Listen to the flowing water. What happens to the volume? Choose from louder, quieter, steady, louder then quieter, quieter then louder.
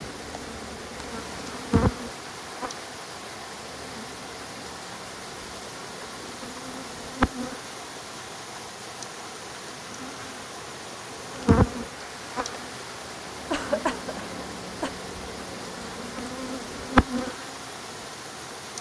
steady.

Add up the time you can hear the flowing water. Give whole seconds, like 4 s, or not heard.
19 s.